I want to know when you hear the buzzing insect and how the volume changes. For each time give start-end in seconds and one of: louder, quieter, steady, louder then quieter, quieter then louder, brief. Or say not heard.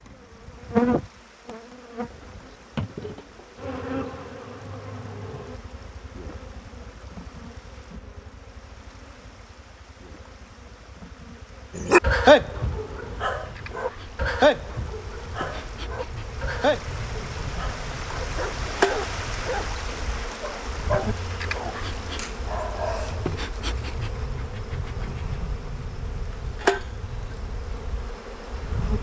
0.0-28.9 quieter then louder.